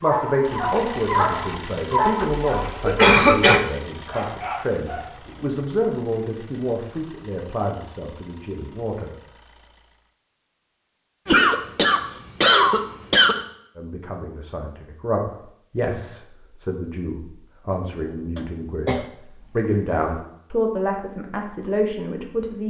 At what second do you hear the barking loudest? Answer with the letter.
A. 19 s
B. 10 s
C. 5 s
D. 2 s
D.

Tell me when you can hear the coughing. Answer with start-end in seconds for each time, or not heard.
2.2-3.6, 11.2-13.3, 18.4-19.1.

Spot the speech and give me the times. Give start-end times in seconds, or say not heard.
0.0-9.1, 13.8-22.6.